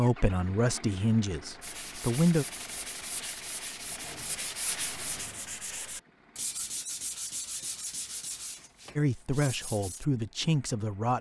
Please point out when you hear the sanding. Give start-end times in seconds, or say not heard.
1.6-10.1.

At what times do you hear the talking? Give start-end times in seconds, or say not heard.
0.0-2.5, 8.9-11.1.